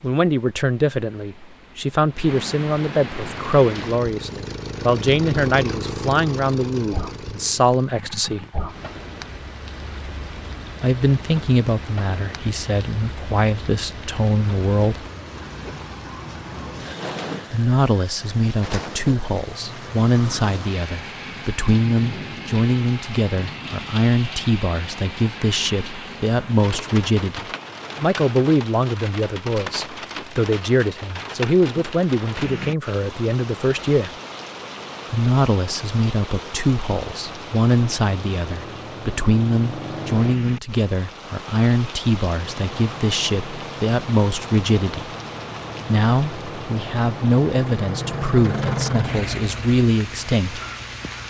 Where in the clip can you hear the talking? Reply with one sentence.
You can hear the talking from 0.0 to 8.4 s, from 10.8 to 15.0 s, from 17.5 to 34.1 s, from 35.1 to 45.1 s and from 45.9 to 50.6 s.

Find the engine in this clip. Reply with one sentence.
You can hear the engine from 3.2 to 8.6 s and from 42.4 to 51.2 s.